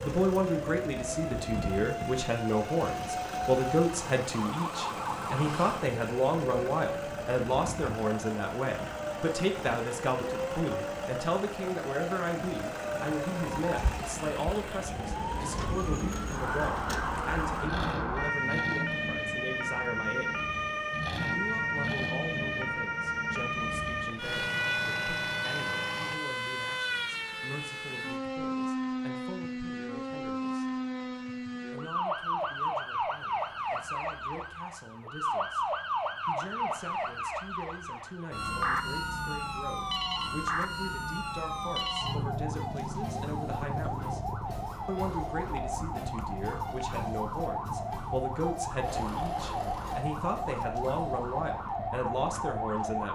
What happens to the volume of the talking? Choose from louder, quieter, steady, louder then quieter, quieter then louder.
quieter then louder.